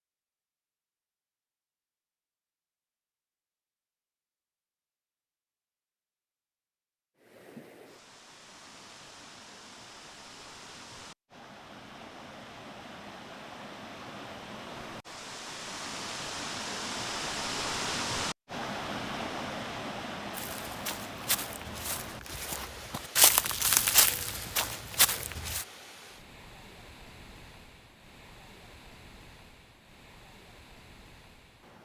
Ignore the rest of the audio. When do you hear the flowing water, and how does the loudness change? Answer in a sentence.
The flowing water can be heard from 7.2 to 31.8 s, getting louder then quieter.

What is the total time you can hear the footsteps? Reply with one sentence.
You can hear the footsteps for 5 seconds altogether.